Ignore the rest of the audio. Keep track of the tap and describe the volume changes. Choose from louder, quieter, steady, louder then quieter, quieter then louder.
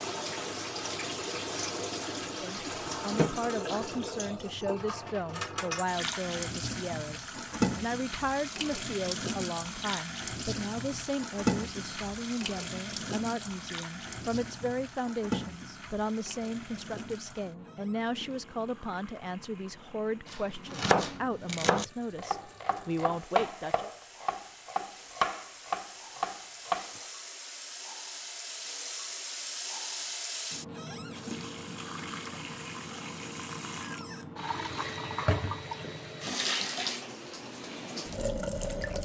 quieter then louder.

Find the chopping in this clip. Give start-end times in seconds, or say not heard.
20.3-27.1.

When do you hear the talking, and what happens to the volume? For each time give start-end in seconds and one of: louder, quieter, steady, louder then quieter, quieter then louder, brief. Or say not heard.
2.2-23.9 steady.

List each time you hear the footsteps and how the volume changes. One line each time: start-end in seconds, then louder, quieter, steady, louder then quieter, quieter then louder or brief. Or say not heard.
not heard.